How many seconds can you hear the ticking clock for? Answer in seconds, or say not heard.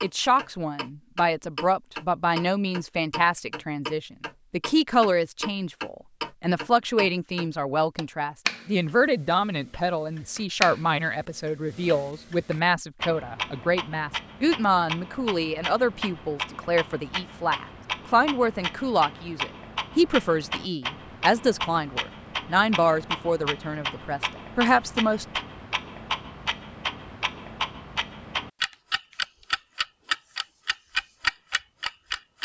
32 s.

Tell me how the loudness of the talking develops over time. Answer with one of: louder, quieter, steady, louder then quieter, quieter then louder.
steady.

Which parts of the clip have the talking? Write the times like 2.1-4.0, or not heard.
0.0-25.4.